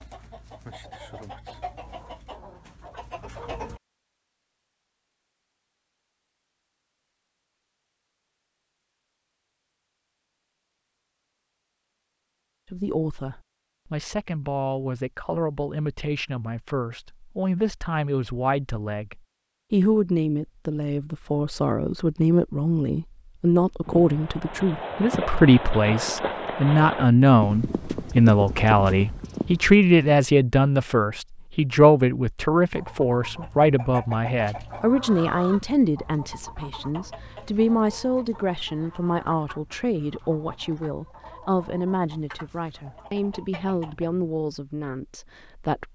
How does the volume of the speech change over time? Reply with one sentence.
The loudness of the speech goes up, then down.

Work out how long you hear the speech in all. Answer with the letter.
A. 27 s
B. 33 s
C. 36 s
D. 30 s
B.